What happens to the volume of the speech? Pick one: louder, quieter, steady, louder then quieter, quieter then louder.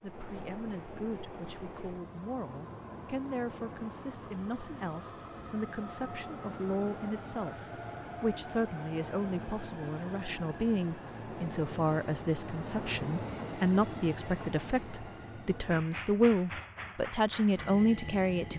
louder.